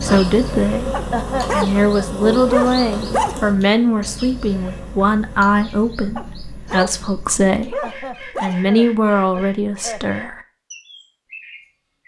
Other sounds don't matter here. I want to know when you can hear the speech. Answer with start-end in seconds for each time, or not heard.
0.0-10.4.